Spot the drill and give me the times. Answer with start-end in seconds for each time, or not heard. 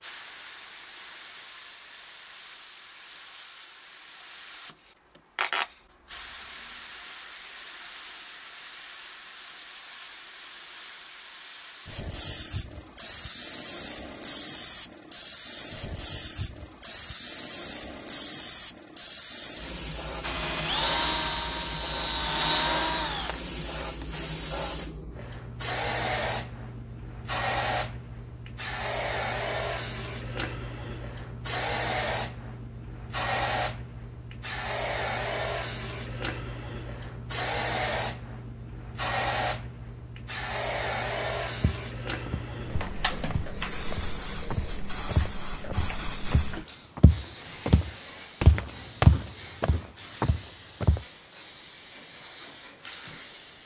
20.2-24.1.